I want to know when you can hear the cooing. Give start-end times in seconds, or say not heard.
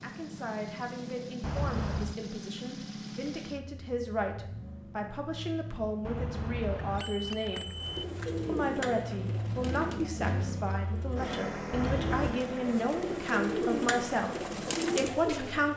7.8-15.7.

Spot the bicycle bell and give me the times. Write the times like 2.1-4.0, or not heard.
1.4-2.1, 6.0-8.1, 11.7-12.4.